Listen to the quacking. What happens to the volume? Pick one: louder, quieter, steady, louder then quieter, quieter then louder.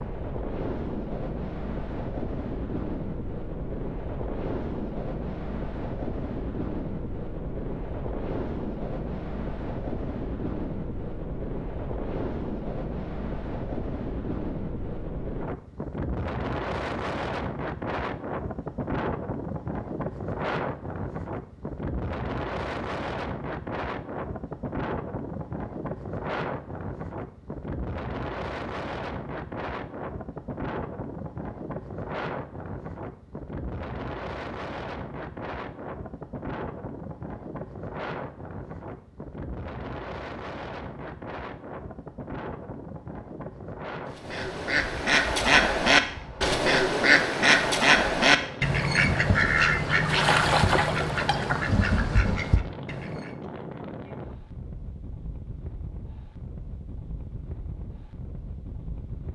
quieter.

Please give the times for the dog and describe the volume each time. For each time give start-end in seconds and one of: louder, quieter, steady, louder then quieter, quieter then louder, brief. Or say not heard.
not heard.